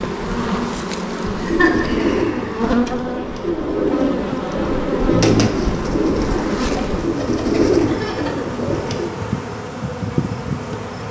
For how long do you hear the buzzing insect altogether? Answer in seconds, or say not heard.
11 s.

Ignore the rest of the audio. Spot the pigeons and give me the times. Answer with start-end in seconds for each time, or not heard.
1.4-9.2.